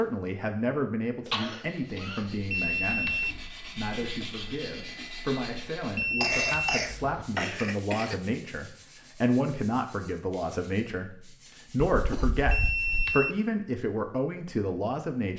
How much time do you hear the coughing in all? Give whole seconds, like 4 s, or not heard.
4 s.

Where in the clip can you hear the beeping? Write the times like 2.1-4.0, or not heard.
2.5-3.4, 6.0-7.2, 12.5-13.4.